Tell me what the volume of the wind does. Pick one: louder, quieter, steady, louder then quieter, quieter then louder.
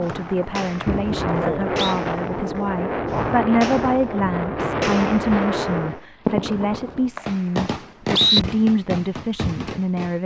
steady.